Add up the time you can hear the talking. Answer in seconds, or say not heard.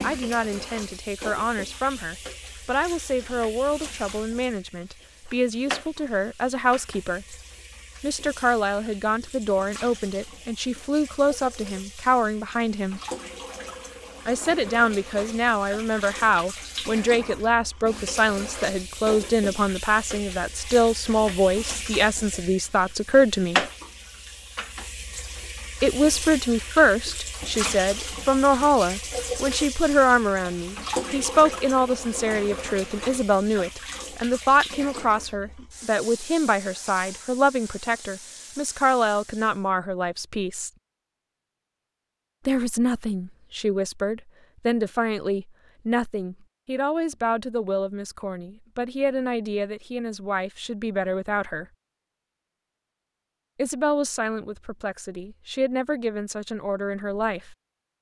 50 s.